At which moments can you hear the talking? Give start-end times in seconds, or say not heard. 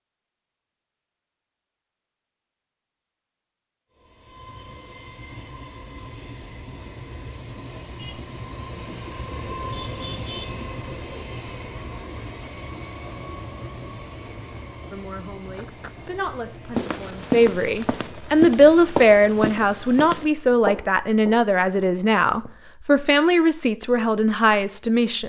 14.9-25.2.